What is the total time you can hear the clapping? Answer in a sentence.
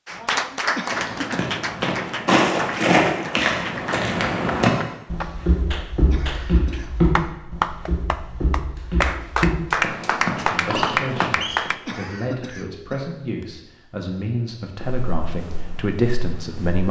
The clapping can be heard for 12 seconds in total.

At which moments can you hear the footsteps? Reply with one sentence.
You can hear the footsteps from 0.8 to 11.8 s and from 14.8 to 16.8 s.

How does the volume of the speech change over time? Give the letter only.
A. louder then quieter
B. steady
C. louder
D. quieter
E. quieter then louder
C.